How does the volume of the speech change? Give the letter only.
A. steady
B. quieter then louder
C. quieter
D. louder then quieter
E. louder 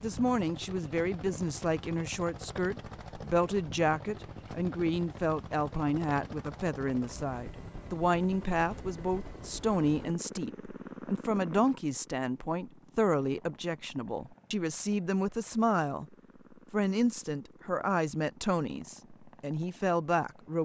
A.